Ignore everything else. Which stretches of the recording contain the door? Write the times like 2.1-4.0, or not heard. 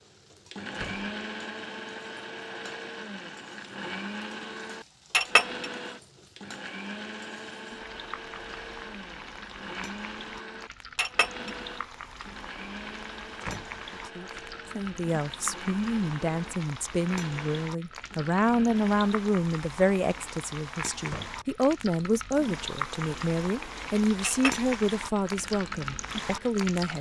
0.7-1.1, 13.4-13.8, 21.1-21.5.